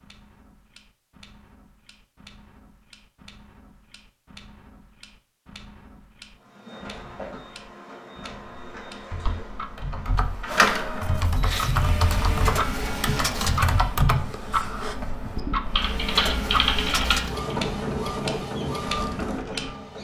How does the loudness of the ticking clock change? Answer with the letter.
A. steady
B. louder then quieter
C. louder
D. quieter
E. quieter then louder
C.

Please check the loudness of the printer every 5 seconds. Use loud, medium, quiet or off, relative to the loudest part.
off, quiet, loud, loud.